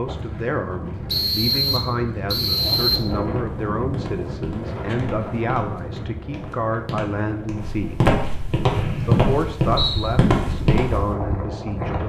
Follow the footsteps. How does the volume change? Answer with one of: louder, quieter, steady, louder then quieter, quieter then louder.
louder.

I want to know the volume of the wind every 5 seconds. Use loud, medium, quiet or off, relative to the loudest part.
loud, medium, loud.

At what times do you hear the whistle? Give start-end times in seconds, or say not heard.
1.1-3.1, 8.7-10.1.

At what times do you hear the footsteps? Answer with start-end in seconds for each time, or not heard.
3.3-11.2.